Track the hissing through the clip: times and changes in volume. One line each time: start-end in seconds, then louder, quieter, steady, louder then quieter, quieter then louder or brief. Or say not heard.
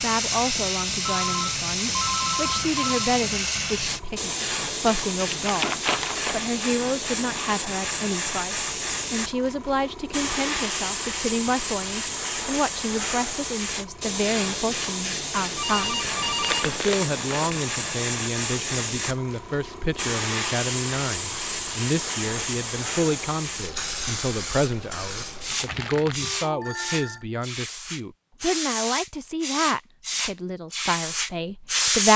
0.0-32.1 steady.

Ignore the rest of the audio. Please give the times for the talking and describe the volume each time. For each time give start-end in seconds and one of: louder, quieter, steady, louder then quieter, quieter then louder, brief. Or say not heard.
0.0-32.1 steady.